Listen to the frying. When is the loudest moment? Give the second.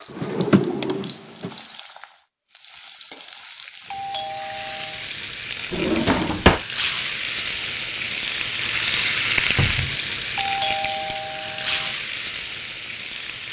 9 s.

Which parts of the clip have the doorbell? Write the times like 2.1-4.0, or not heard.
3.9-5.0, 10.3-11.9.